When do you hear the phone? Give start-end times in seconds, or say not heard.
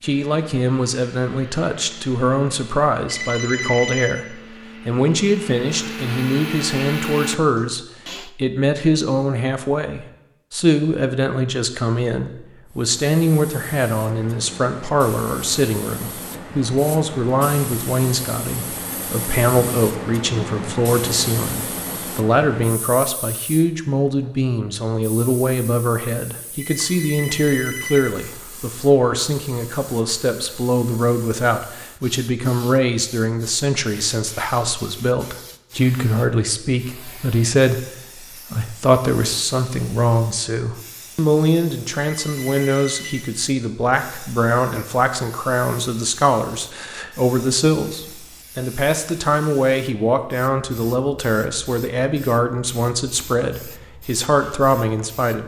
3.0-4.2, 26.6-28.1, 42.0-43.2.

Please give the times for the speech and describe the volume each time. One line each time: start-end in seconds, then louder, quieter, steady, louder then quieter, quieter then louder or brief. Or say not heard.
0.0-55.4 steady.